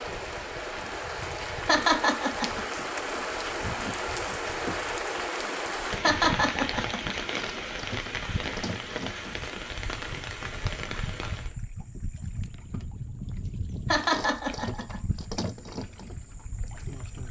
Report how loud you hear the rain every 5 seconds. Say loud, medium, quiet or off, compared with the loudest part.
loud, loud, medium, off.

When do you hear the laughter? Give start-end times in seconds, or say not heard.
1.6-2.6, 6.0-7.2, 13.8-15.0.